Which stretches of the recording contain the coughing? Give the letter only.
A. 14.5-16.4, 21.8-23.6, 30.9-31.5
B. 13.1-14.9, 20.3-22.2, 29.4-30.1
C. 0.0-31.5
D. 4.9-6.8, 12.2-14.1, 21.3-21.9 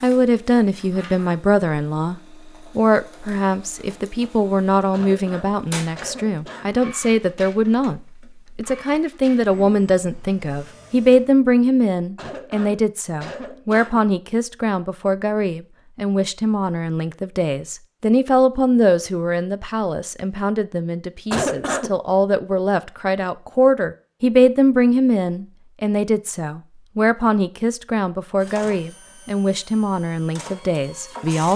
D.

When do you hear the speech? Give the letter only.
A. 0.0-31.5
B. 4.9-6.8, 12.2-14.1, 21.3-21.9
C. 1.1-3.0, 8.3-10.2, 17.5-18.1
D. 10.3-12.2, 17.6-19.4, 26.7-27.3
A.